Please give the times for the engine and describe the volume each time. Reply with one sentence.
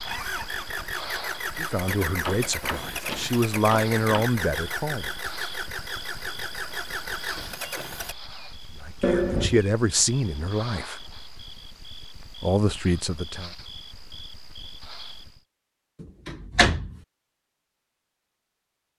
You can hear the engine from 0.0 to 8.2 s, at a steady volume.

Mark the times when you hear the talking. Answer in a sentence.
The talking can be heard from 1.6 to 5.1 s, from 8.8 to 11.1 s and from 12.2 to 13.5 s.